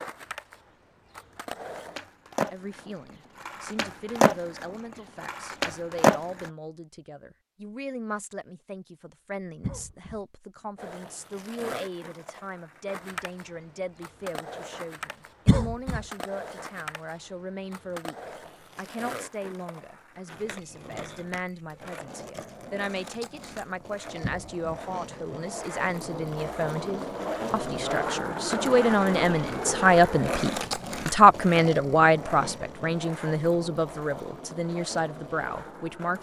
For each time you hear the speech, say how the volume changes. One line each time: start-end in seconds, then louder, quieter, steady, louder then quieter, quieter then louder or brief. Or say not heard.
2.5-36.1 louder.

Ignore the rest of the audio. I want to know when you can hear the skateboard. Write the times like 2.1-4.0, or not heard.
0.0-6.5, 10.8-36.1.